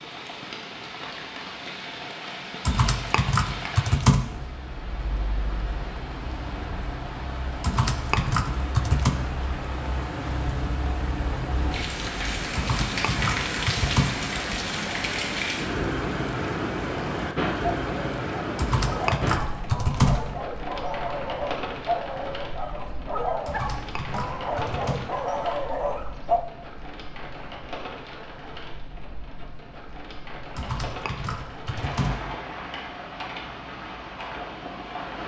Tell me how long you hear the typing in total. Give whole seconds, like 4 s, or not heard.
10 s.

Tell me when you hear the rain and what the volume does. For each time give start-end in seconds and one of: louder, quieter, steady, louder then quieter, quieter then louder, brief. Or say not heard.
0.0-35.2 louder then quieter.